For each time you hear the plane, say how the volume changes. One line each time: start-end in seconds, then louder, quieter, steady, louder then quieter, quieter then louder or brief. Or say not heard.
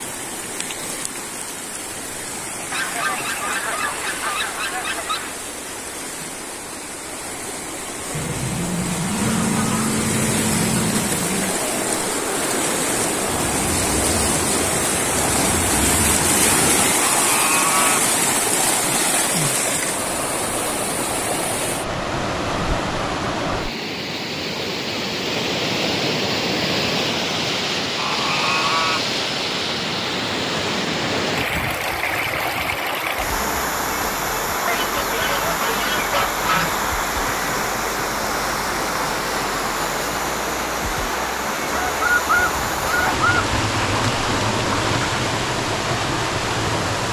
8.1-16.9 steady.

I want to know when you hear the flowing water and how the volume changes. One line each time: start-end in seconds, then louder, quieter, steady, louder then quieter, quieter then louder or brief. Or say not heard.
0.0-47.0 louder.